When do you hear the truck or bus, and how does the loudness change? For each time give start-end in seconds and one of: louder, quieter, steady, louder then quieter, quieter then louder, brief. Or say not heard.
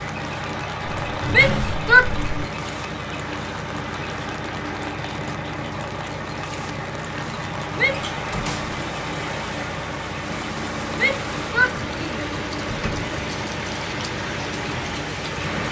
0.0-15.6 steady.